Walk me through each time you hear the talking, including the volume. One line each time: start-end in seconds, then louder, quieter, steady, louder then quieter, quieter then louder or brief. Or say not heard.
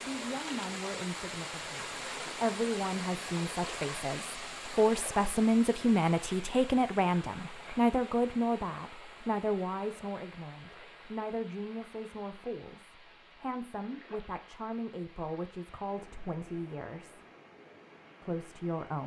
0.1-17.2 louder then quieter
18.2-19.0 brief.